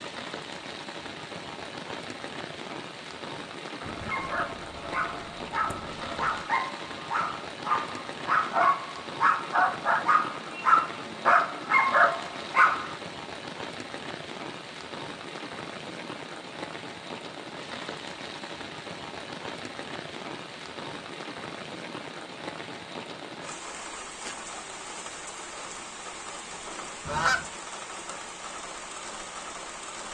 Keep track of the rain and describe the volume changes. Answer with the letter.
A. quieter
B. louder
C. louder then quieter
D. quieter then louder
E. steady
E.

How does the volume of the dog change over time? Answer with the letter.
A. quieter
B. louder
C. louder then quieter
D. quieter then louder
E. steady
B.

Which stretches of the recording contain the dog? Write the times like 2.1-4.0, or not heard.
4.0-12.9.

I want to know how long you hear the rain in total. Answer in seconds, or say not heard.
30 s.